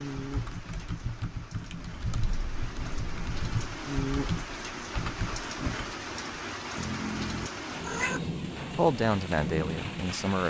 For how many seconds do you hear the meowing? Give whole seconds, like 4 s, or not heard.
3 s.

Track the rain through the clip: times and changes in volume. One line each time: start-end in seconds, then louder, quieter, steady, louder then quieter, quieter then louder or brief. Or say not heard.
0.0-10.4 louder.